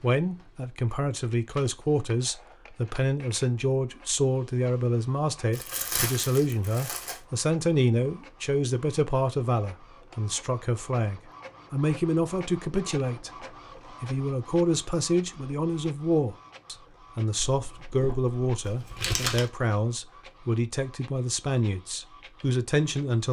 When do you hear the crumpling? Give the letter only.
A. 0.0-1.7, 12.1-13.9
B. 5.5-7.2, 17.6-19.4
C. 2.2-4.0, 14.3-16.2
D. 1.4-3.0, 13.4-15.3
B.